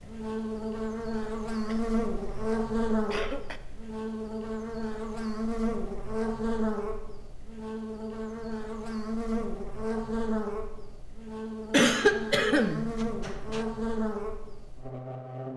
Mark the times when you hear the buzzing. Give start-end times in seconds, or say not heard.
0.0-15.5.